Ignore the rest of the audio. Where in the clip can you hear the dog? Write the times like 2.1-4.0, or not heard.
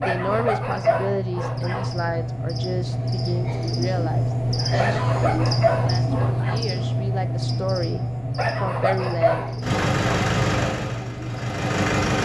0.0-1.9, 4.8-6.6, 8.3-10.2.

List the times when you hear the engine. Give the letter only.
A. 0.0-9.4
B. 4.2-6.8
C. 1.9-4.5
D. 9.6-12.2
D.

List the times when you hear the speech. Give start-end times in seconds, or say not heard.
0.0-9.4.